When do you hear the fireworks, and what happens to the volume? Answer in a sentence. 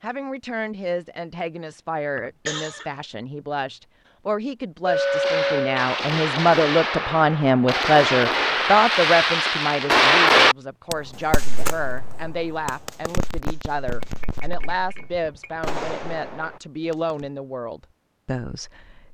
You can hear the fireworks from 4.9 to 17.2 s, getting louder then quieter.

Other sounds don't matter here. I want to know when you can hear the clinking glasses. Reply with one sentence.
The clinking glasses can be heard from 4.8 to 5.7 s and from 13.8 to 15.6 s.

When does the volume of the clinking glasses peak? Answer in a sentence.
The volume of the clinking glasses peaks at 5 seconds.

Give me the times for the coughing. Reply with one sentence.
The coughing can be heard from 2.1 to 2.9 s.